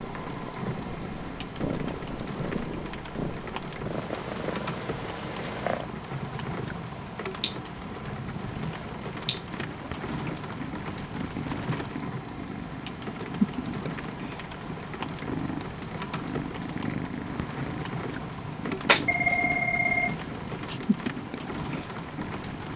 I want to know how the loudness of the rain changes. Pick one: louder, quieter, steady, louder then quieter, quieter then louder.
steady.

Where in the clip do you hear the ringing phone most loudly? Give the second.
19 s.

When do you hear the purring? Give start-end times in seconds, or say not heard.
0.0-22.7.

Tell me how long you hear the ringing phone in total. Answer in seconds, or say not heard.
2 s.